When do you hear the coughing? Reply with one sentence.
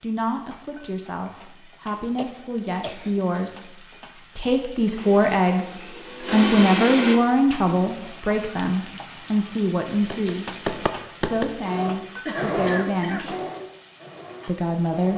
The coughing can be heard from 2.1 to 3.2 s and from 12.2 to 13.3 s.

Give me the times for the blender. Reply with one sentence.
The blender can be heard from 5.0 to 7.2 s and from 11.7 to 15.1 s.